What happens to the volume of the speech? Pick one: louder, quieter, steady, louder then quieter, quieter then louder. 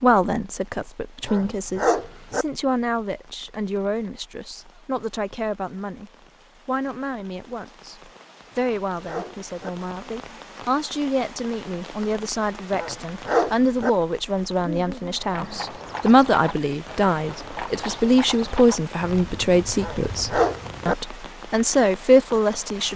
louder.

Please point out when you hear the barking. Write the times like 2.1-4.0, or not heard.
1.2-2.5, 8.5-9.7, 12.8-13.9, 19.8-20.9.